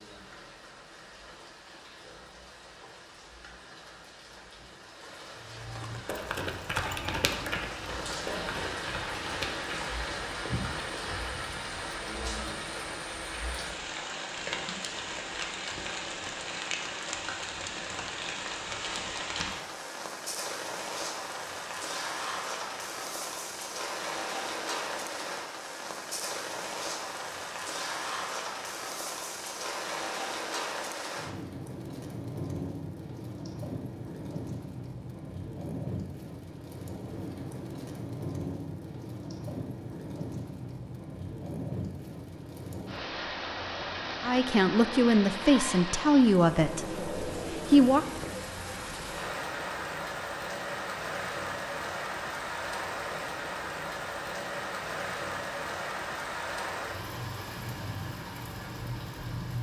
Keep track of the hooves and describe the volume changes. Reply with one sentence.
The loudness of the hooves goes down.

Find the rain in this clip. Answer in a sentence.
You can hear the rain from 0.0 to 59.5 s.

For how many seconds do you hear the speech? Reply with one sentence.
You can hear the speech for 4 seconds altogether.